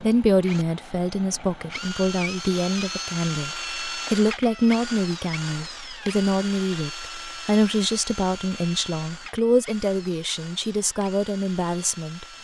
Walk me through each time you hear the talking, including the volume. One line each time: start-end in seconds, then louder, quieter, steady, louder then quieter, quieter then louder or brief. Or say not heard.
0.0-12.2 steady.